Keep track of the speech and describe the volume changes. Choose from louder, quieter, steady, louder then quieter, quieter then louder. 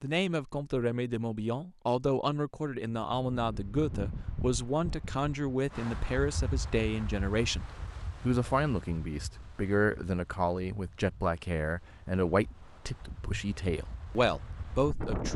steady.